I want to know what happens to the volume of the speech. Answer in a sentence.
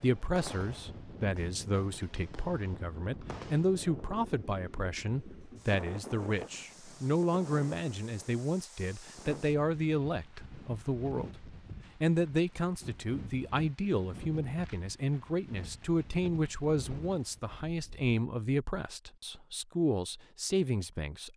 The loudness of the speech stays about the same.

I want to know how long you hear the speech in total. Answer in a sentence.
You can hear the speech for 21 seconds altogether.